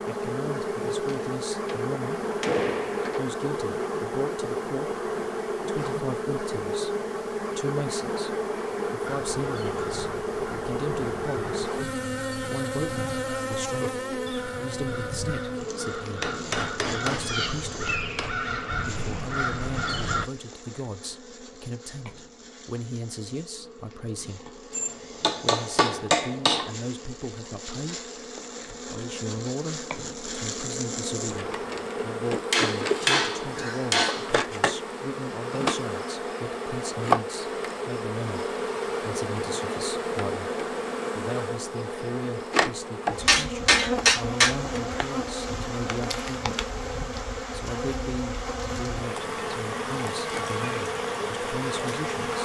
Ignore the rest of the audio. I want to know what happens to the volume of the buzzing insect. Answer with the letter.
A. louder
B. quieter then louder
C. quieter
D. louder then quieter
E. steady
B.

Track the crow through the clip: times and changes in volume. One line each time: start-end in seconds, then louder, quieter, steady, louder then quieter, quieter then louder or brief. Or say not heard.
9.0-20.3 louder.